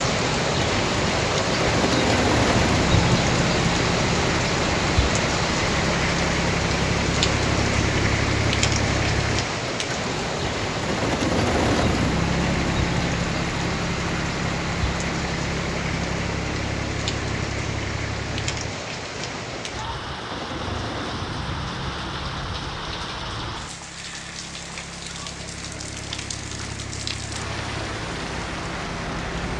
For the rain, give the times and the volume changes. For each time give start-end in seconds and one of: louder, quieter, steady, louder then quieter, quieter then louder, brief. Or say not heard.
0.0-29.5 quieter.